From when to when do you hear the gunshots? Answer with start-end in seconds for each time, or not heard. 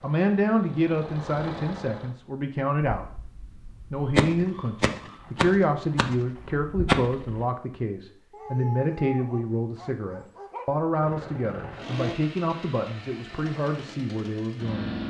3.0-7.5.